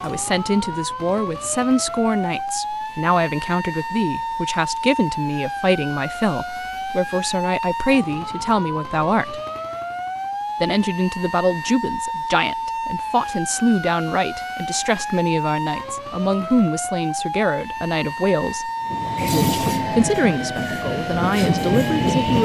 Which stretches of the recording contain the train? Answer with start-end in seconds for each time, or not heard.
18.9-22.4.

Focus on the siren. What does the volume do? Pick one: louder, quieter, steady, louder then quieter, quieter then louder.
steady.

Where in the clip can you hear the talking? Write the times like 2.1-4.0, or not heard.
0.0-9.4, 10.6-18.7, 19.3-22.4.